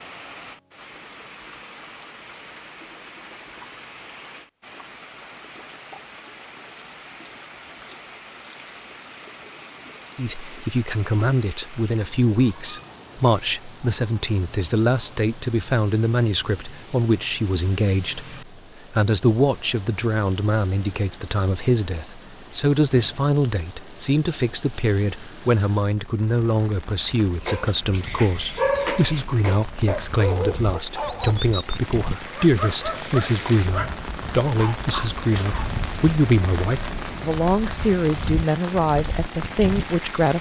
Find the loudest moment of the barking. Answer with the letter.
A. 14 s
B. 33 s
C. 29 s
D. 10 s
C.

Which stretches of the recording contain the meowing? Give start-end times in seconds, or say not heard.
not heard.